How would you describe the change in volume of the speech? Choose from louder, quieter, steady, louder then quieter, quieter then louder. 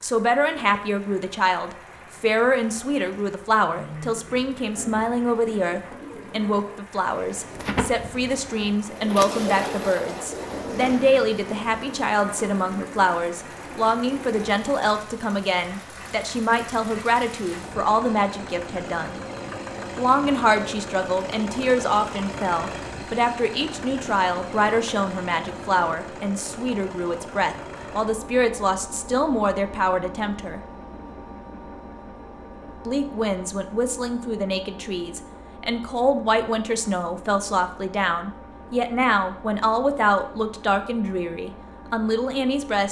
steady.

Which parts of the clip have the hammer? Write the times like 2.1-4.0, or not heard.
not heard.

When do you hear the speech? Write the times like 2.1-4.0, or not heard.
0.0-19.2, 19.9-30.6, 32.9-42.8.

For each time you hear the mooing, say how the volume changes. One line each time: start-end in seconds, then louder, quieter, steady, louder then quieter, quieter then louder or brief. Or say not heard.
not heard.